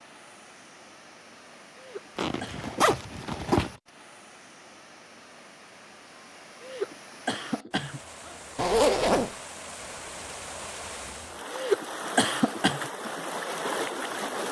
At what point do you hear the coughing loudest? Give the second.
12 s.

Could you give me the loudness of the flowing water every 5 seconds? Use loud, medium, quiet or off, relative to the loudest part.
quiet, medium, loud.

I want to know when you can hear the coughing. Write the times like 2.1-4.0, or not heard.
1.8-2.8, 6.6-8.0, 11.5-12.9.